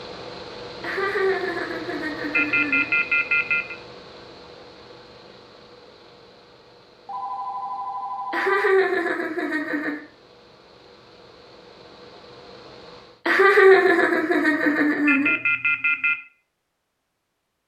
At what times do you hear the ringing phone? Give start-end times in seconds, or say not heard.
2.3-3.8, 7.0-8.7, 15.1-16.1.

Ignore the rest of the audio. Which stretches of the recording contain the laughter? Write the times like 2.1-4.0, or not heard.
0.8-3.0, 8.3-10.0, 13.2-15.3.